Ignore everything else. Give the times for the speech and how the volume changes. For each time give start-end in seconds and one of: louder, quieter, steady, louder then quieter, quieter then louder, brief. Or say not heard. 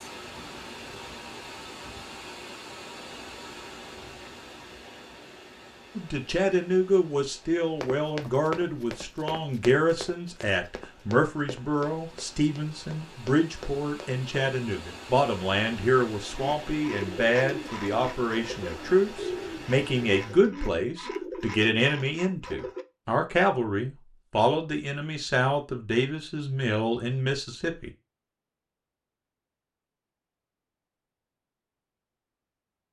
6.0-27.9 steady.